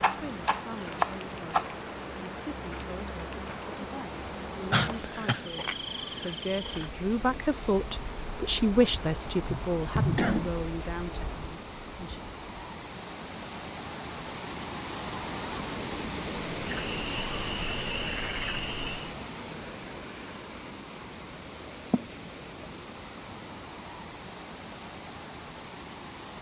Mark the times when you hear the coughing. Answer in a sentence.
The coughing can be heard from 4.7 to 5.5 s, from 9.3 to 10.5 s and from 21.9 to 22.6 s.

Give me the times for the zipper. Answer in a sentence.
The zipper can't be heard in this clip.